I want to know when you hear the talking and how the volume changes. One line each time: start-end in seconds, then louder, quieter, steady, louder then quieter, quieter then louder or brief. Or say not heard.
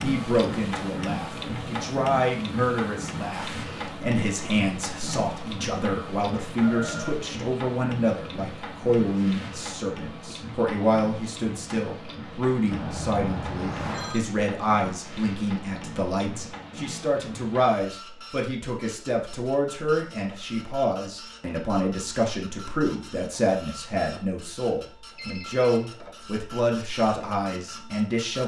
0.0-28.4 steady.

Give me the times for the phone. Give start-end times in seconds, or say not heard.
6.6-7.2, 12.7-14.2, 25.1-25.9.